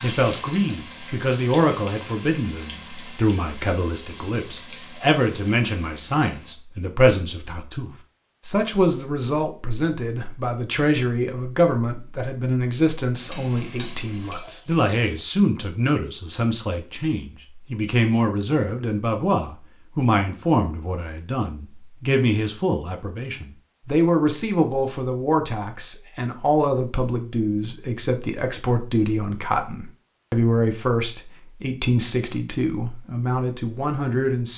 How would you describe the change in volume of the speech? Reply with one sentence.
The volume of the speech stays about the same.